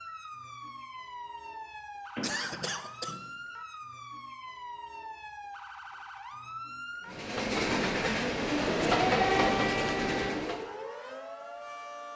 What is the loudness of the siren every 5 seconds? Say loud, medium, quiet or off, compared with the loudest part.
medium, loud, medium.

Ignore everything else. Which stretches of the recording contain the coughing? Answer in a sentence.
The coughing can be heard from 2.2 to 3.2 s.